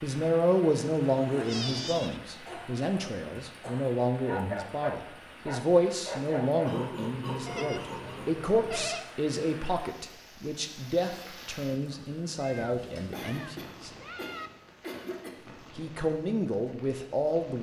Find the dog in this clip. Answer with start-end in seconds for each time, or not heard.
4.2-6.8.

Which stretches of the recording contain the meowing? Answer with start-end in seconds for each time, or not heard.
1.0-2.2, 7.5-9.1, 12.3-14.5.